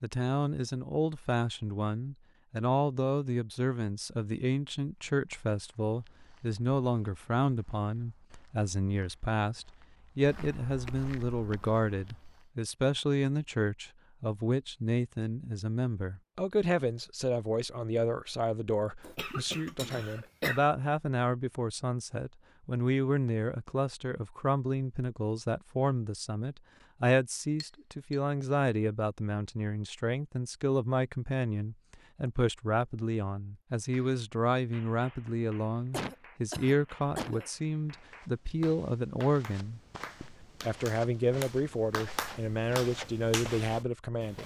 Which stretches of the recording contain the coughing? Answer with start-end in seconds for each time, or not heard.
19.0-20.6, 35.9-37.5.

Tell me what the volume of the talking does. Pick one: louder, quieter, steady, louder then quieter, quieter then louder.
steady.